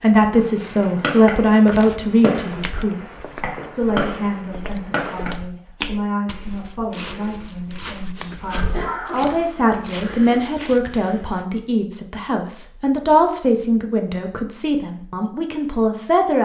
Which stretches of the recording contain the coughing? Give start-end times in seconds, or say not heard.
8.7-9.4.